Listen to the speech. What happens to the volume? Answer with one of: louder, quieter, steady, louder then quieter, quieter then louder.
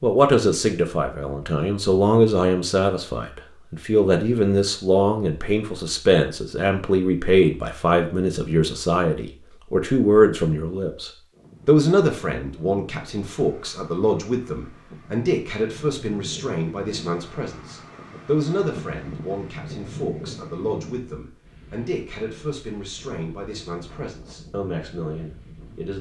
quieter.